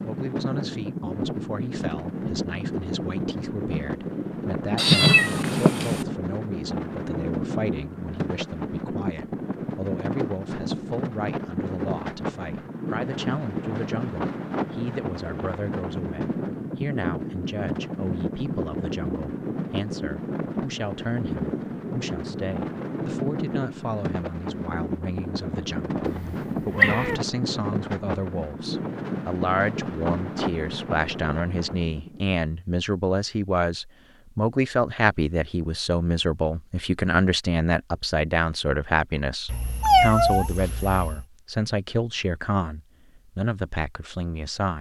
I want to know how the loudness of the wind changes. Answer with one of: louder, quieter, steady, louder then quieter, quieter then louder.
steady.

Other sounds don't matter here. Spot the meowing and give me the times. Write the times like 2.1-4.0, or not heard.
4.8-6.0, 26.1-27.2, 39.5-41.2.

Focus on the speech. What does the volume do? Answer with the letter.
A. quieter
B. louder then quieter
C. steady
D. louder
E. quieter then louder
D.